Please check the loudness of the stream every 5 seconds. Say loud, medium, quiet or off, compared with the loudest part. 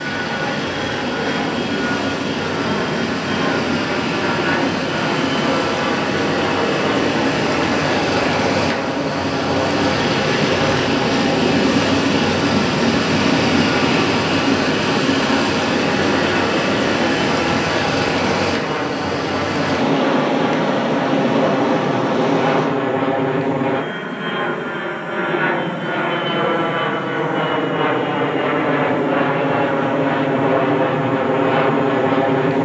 medium, loud, loud, loud, loud, off, off.